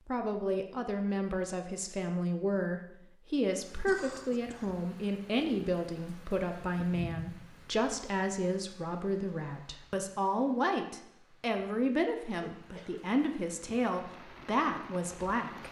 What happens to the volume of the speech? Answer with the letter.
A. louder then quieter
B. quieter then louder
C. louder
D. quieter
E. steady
E.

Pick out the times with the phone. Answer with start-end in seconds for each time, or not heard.
not heard.